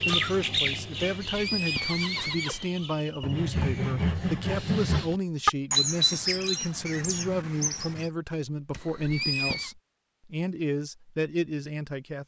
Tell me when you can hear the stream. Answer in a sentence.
The stream can't be heard in this clip.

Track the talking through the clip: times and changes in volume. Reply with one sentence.
The talking can be heard from 0.1 to 12.2 s, at a steady volume.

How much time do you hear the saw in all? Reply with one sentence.
You can hear the saw for 2 seconds altogether.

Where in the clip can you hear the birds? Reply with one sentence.
The birds can be heard from 0.0 to 8.1 s.